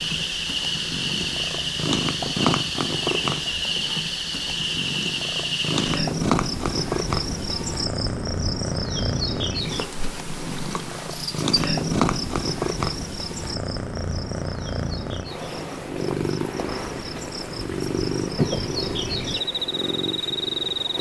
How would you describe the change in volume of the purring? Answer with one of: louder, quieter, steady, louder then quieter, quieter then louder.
steady.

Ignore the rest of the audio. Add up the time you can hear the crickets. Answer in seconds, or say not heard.
21 s.